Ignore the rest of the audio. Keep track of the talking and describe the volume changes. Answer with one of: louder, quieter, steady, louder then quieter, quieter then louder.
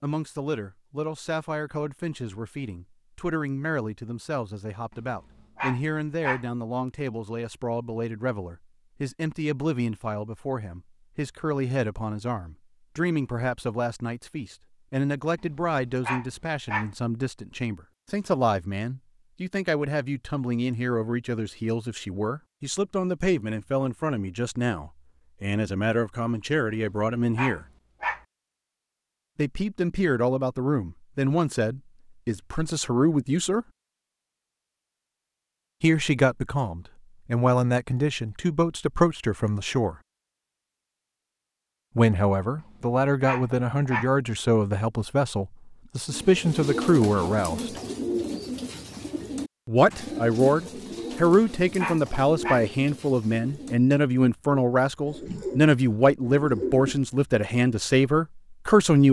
louder.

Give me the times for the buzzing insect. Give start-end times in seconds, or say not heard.
not heard.